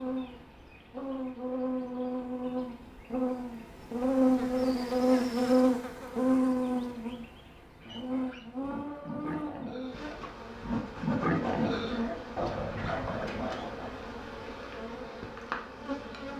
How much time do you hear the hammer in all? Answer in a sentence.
You can't hear the hammer here.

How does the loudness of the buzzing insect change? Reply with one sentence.
The volume of the buzzing insect goes up, then down.